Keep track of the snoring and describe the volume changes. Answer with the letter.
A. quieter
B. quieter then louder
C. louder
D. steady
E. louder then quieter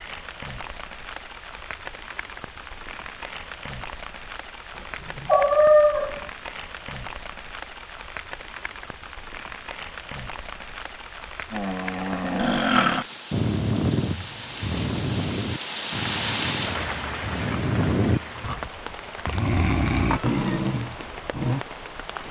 B.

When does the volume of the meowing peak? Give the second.
6 s.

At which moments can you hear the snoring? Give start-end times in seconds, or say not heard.
11.5-21.6.